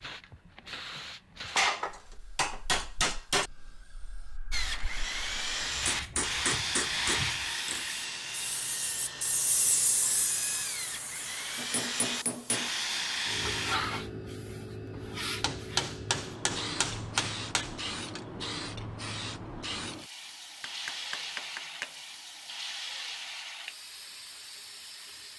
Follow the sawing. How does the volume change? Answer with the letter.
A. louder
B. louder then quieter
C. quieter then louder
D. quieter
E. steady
C.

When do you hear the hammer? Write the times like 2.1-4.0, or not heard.
1.4-3.5, 5.8-7.8, 11.6-12.7, 15.4-18.2, 20.6-21.9.